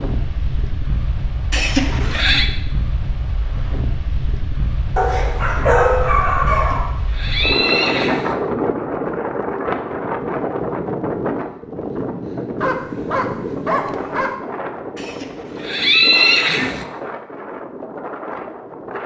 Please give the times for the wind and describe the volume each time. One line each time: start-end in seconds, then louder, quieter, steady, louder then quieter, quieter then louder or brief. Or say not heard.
0.0-19.0 louder then quieter.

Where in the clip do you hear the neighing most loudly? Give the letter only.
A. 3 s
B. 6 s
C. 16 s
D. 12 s
C.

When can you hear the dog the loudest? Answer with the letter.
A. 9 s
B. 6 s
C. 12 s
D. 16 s
B.